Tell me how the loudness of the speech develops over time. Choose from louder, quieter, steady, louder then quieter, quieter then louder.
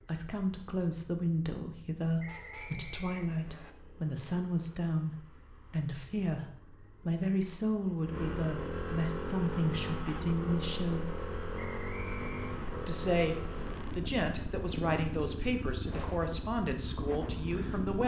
steady.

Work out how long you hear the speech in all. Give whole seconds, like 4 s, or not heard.
16 s.